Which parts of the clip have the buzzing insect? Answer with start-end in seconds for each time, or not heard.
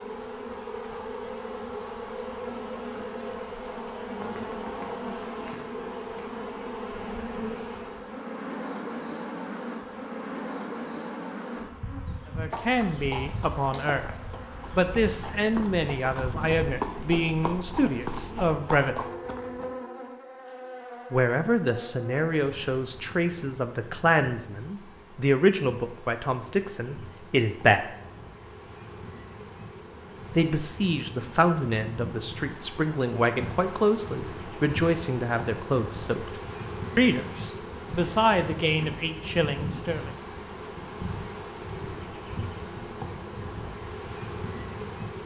0.0-45.2.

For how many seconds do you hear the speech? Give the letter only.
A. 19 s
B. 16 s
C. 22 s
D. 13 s
C.